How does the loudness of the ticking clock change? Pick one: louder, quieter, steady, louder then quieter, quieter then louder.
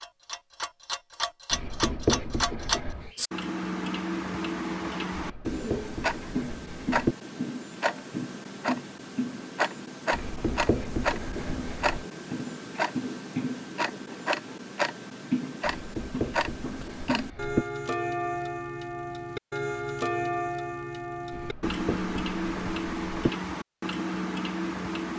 steady.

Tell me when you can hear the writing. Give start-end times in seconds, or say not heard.
1.5-3.1, 5.2-7.2, 10.1-12.1, 15.8-17.6, 21.3-23.3.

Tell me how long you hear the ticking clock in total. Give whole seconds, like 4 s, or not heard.
25 s.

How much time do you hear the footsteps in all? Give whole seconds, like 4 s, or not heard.
not heard.